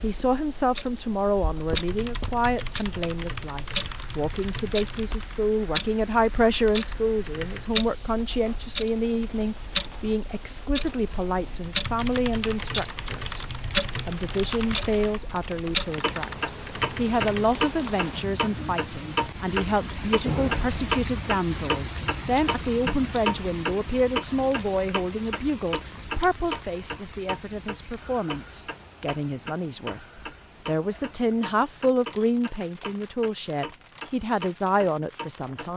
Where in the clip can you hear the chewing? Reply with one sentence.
The chewing can't be heard in this clip.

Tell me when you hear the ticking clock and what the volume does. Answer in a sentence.
You can hear the ticking clock from 0.0 to 35.7 s, getting louder then quieter.